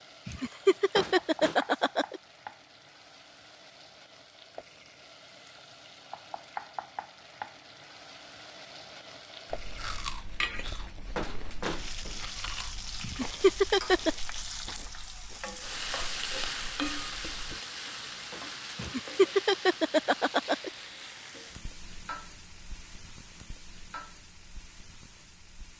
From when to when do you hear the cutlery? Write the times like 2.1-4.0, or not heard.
not heard.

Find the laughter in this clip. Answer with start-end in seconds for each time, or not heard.
0.2-2.2, 13.0-14.1, 18.8-20.7.